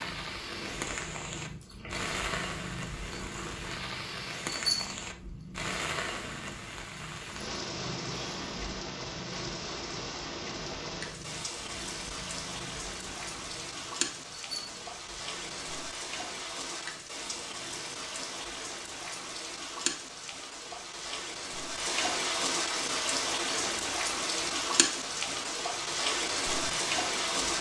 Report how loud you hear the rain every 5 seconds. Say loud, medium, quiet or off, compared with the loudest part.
medium, medium, medium, medium, loud, loud.